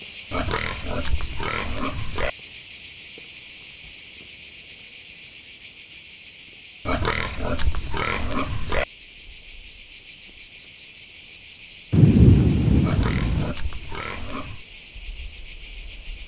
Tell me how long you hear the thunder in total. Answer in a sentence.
You can hear the thunder for 2 seconds altogether.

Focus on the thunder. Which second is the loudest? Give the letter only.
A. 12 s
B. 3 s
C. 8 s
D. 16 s
A.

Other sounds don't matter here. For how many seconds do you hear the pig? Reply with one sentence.
The pig can be heard for 6 seconds in total.